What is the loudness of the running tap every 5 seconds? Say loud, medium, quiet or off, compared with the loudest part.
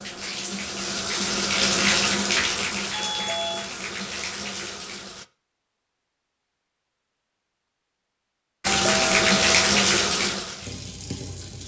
medium, loud, medium.